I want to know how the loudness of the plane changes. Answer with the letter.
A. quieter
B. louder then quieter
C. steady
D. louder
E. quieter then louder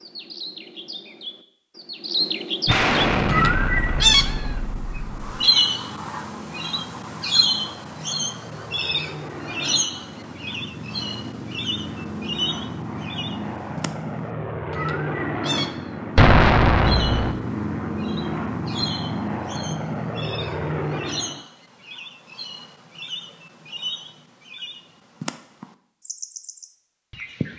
D.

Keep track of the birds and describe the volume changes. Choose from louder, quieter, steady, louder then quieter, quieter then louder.
quieter.